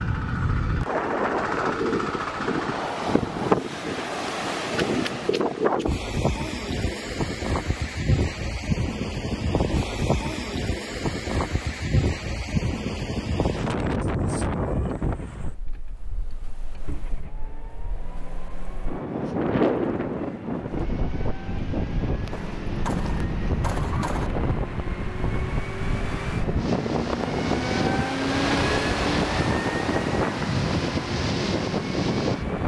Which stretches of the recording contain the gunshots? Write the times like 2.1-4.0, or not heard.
22.3-24.3.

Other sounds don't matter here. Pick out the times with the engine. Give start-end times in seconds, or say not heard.
0.0-3.0, 14.9-32.6.